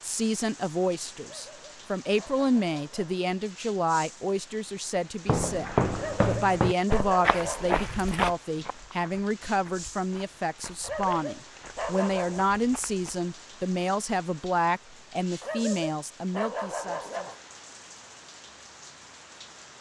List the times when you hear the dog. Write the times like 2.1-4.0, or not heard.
1.2-3.2, 6.0-7.8, 10.8-12.4, 15.4-17.4.